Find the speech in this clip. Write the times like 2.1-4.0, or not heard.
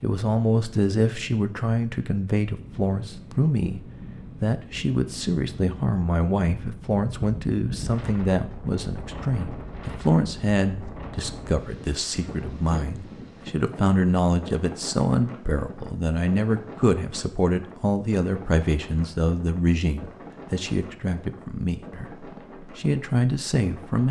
0.0-3.8, 4.4-24.0.